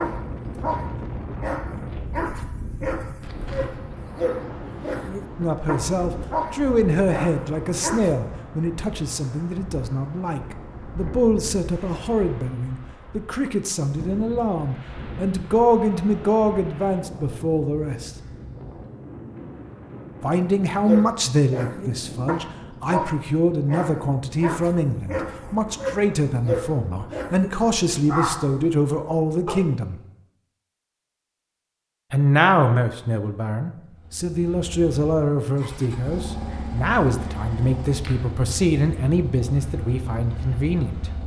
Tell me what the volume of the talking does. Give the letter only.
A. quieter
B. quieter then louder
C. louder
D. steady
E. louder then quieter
D.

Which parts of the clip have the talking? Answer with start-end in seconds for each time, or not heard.
5.3-18.1, 20.2-30.0, 32.1-41.0.